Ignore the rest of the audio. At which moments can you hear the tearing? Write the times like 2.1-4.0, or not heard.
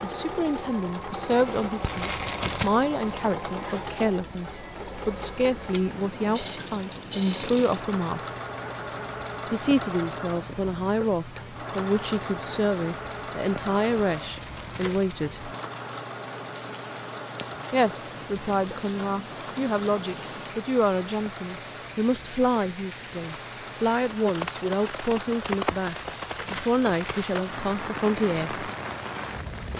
1.8-2.7, 13.9-15.1, 25.7-27.4.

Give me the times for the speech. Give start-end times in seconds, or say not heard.
0.0-8.3, 9.5-15.5, 17.7-28.6.